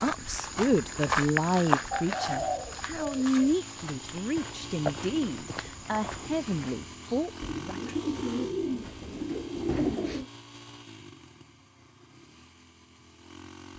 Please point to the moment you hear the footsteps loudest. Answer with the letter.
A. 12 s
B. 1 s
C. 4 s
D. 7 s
B.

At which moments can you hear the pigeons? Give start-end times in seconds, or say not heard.
1.9-3.5, 7.4-10.2.